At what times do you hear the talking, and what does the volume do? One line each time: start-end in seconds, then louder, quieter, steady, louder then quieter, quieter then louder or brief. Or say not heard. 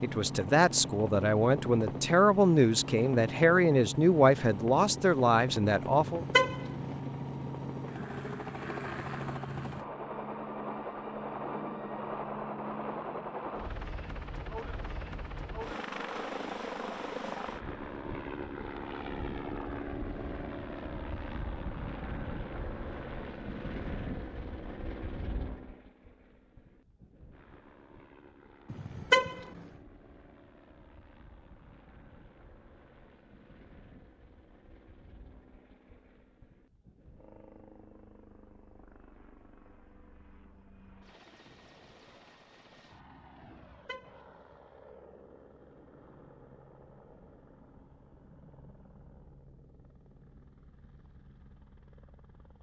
0.0-6.2 steady.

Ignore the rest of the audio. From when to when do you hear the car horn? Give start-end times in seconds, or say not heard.
6.1-6.8, 28.7-29.6, 43.5-44.5.